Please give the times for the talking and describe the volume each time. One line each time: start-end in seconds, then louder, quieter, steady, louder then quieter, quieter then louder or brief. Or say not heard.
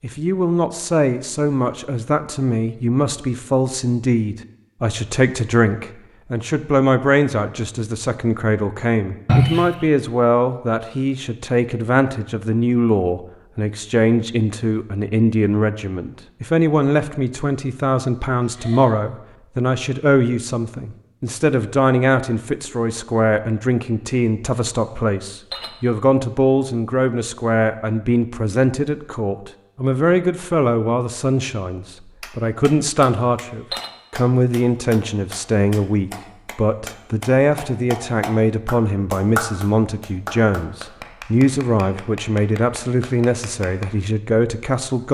0.0-45.0 steady.